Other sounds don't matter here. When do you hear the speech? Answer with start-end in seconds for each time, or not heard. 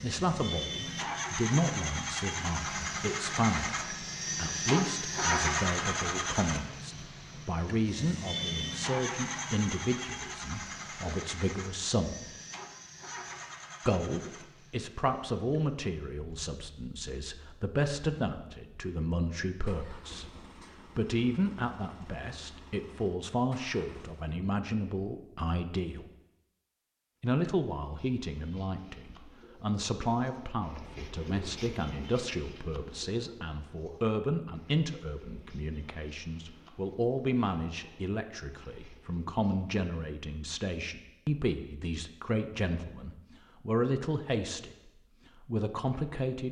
0.0-12.2, 13.8-20.3, 20.9-26.1, 27.2-46.4.